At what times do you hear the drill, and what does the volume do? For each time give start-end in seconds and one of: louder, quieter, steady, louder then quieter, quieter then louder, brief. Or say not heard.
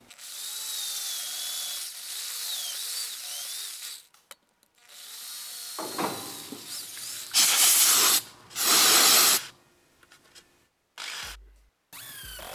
0.1-12.5 quieter.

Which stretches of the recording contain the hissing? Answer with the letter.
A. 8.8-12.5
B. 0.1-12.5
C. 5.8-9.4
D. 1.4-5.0
C.